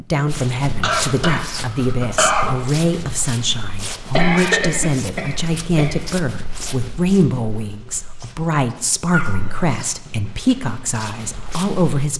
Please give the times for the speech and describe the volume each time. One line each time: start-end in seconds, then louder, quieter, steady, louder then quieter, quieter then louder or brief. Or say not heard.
0.0-12.1 steady.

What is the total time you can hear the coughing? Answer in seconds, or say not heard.
4 s.